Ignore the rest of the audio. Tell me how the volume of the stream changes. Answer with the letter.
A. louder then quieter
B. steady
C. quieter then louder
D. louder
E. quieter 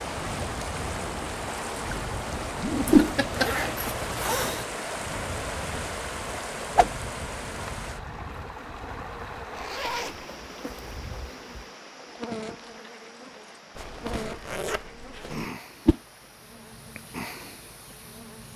E.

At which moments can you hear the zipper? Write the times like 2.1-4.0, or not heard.
2.8-4.7, 9.5-10.2, 13.8-15.4.